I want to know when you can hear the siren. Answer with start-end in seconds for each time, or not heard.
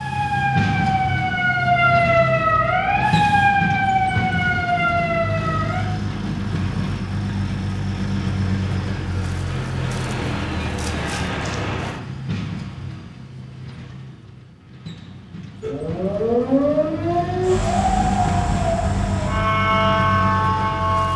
0.0-5.8, 15.6-21.1.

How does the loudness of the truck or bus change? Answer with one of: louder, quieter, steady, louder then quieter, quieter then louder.
quieter then louder.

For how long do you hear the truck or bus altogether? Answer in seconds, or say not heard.
21 s.